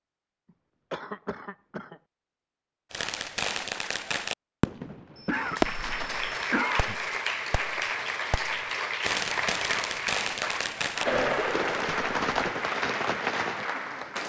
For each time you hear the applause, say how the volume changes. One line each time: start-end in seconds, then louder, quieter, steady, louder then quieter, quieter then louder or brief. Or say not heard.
5.3-14.2 steady.